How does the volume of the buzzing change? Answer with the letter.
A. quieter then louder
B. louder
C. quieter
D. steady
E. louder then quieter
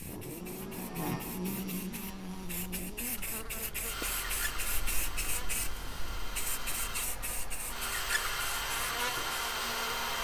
A.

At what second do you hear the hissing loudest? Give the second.
5 s.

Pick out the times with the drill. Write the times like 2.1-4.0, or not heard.
3.1-10.1.